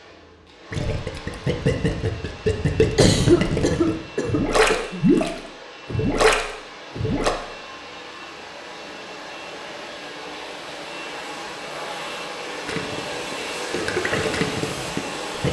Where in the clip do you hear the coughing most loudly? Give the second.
3 s.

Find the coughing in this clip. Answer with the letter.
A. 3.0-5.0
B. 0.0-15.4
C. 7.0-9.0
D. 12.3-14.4
A.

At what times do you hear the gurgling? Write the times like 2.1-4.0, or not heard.
0.7-7.3, 12.7-15.4.